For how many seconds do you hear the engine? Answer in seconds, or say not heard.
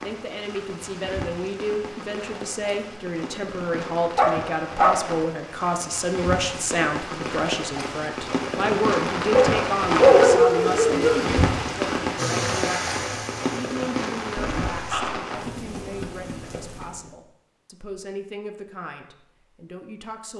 3 s.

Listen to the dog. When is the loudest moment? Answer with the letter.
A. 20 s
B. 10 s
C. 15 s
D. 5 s
B.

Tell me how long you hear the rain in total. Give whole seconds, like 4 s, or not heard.
17 s.